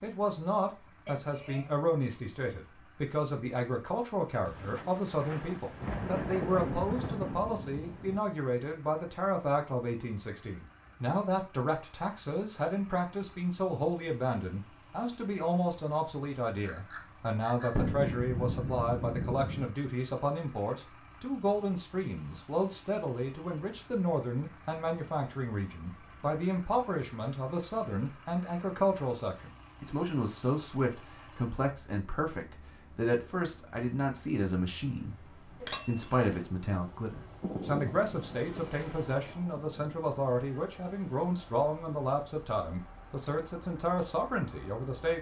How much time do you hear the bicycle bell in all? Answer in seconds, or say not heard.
3 s.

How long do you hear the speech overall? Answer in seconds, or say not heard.
45 s.